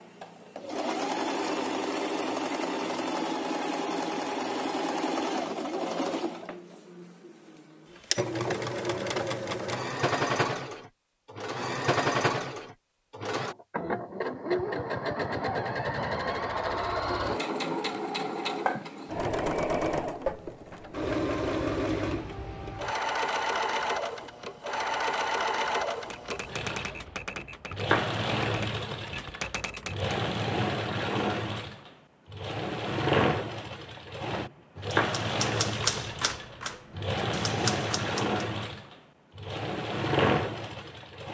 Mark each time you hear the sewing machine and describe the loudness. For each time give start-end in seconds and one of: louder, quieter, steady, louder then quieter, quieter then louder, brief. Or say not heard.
0.0-41.2 steady.